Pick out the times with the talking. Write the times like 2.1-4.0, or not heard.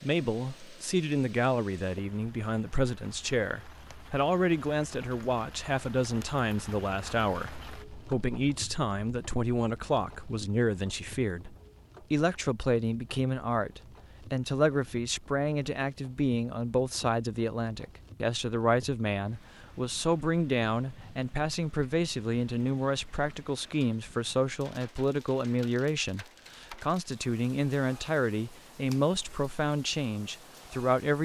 0.0-31.1.